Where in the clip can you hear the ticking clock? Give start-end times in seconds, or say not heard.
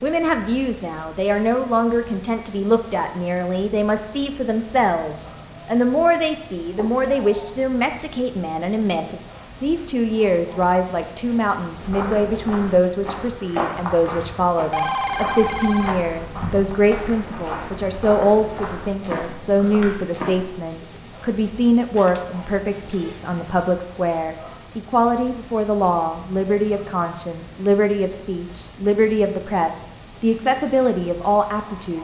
not heard.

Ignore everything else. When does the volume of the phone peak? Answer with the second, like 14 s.
15 s.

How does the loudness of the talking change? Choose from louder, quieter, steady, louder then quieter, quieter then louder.
steady.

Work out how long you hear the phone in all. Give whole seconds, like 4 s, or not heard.
3 s.